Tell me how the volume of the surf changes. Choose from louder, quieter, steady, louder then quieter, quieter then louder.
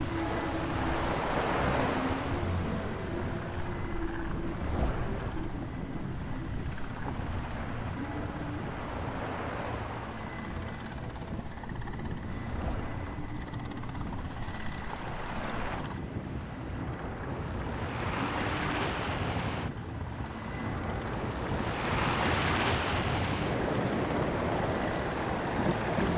quieter then louder.